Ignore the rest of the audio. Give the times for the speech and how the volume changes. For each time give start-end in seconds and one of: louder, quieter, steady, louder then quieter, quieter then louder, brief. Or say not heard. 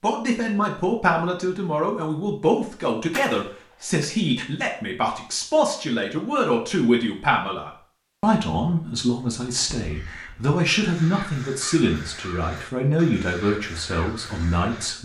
0.0-14.9 steady.